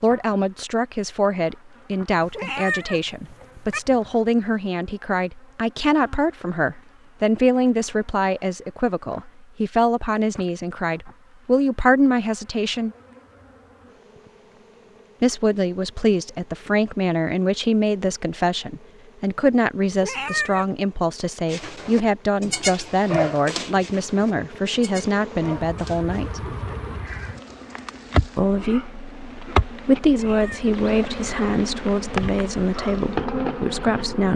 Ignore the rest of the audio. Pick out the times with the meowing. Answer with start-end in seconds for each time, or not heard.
2.2-3.8, 19.9-20.6, 30.1-30.7.